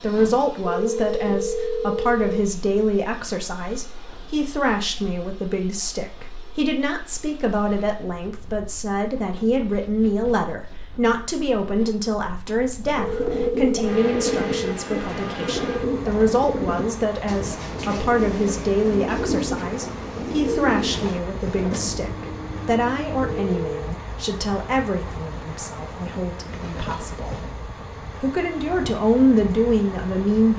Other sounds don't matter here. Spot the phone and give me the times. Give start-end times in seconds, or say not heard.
0.7-2.4, 12.9-14.8, 23.2-23.9.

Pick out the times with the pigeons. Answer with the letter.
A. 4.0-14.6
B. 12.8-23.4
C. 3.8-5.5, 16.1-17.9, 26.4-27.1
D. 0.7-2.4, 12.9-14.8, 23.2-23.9
B.